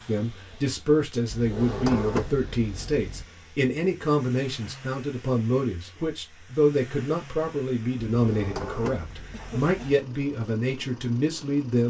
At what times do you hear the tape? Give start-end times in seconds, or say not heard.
not heard.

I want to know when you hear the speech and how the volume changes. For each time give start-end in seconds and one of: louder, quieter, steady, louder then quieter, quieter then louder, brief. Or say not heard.
0.1-11.8 steady.